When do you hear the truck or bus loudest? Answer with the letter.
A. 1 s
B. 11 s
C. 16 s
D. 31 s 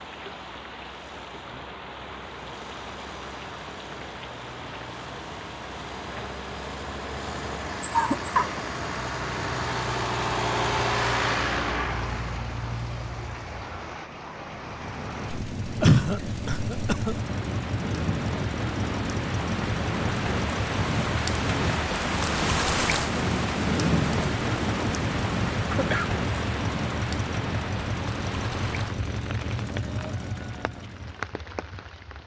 B.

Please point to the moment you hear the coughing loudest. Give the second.
16 s.